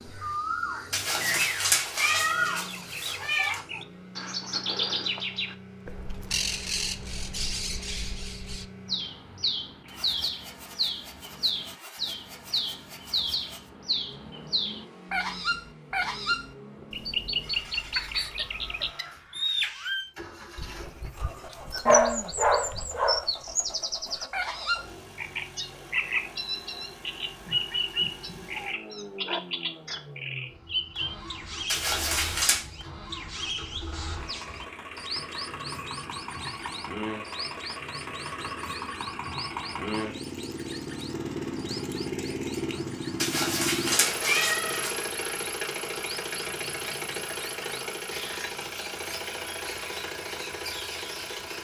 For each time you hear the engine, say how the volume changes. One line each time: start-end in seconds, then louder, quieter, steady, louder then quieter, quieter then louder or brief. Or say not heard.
0.0-51.5 louder.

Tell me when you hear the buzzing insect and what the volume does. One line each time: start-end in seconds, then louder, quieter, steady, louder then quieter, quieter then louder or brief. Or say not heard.
not heard.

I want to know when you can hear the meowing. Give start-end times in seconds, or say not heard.
0.9-3.6, 31.6-32.6, 43.2-45.0.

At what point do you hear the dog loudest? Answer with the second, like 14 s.
22 s.